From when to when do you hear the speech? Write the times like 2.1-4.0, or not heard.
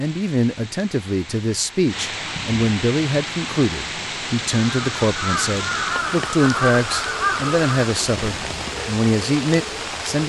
0.0-10.2.